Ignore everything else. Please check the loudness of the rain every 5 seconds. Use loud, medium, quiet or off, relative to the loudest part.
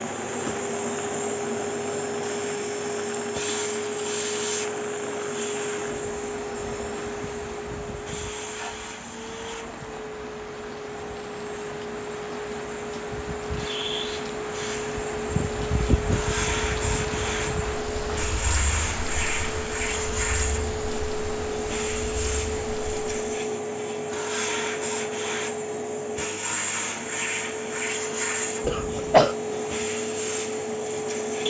medium, medium, medium, loud, medium, off, off.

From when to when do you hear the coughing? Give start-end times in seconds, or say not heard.
28.6-29.4.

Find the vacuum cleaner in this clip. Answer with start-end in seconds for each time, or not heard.
0.0-31.4.